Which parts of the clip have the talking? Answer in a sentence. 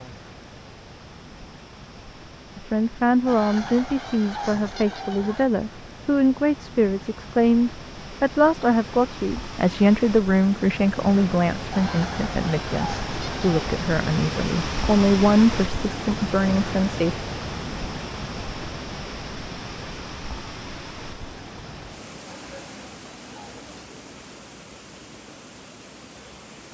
You can hear the talking from 2.5 to 17.2 s.